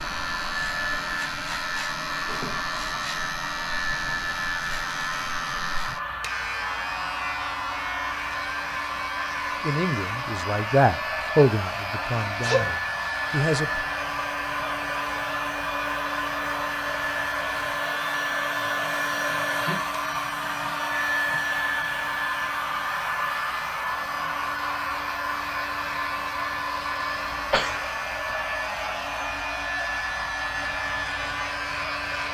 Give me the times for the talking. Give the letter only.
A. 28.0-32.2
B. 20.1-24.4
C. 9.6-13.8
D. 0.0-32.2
C.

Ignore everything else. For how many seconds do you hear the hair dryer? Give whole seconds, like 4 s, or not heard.
32 s.